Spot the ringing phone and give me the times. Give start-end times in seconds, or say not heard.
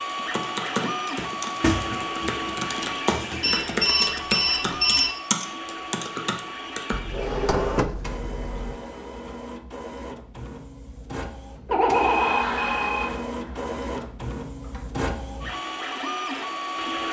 3.4-5.1, 11.7-13.2.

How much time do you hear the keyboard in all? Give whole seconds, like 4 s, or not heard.
7 s.